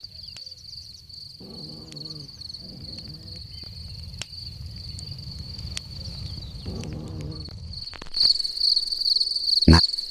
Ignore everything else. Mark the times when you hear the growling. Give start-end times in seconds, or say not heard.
1.4-3.4, 6.7-7.5.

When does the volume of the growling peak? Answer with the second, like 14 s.
7 s.